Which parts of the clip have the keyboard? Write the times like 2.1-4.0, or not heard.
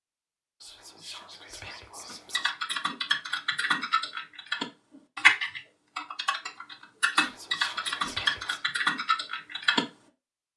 2.1-9.8.